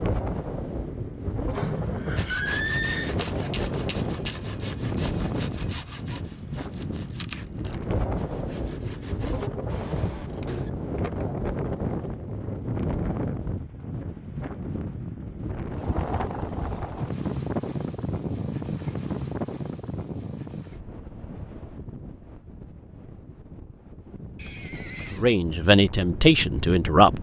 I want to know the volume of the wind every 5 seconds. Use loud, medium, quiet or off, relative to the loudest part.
loud, loud, loud, loud, medium, medium.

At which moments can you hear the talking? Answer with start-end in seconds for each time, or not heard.
25.1-27.1.